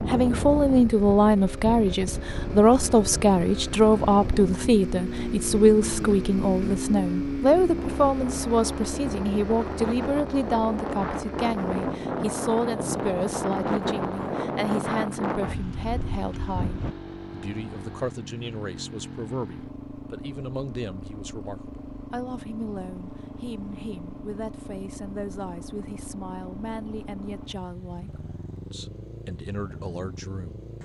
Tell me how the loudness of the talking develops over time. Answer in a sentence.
The volume of the talking goes down.